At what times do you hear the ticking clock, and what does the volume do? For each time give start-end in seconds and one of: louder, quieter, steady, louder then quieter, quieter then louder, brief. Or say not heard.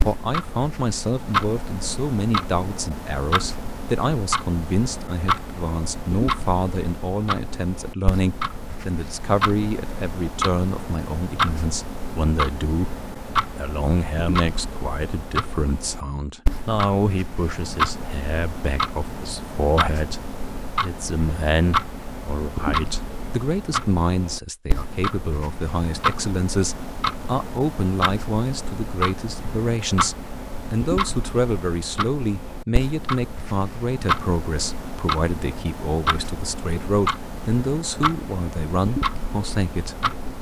0.0-40.3 steady.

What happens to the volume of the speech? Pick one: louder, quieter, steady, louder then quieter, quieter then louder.
steady.